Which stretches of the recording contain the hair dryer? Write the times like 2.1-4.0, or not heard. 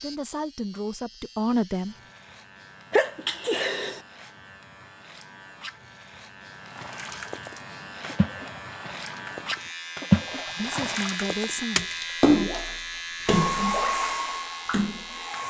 13.2-15.4.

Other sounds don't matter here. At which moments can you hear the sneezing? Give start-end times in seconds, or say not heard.
2.9-4.0.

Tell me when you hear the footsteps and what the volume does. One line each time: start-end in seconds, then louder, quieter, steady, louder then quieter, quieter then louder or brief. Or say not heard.
not heard.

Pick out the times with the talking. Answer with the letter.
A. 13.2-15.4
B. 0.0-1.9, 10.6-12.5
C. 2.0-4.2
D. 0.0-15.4
B.